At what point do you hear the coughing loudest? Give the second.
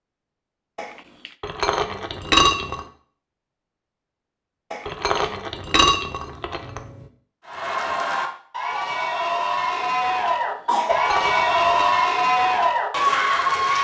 11 s.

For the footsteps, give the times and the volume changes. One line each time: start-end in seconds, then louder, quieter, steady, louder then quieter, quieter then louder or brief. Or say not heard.
not heard.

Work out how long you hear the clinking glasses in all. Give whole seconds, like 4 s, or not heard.
5 s.